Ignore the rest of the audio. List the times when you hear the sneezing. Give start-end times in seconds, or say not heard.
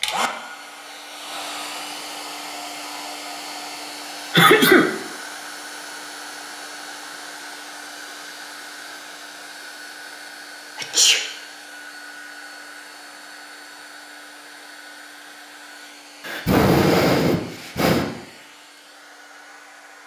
4.3-4.8, 10.8-11.2, 16.2-18.1.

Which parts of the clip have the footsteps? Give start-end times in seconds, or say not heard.
not heard.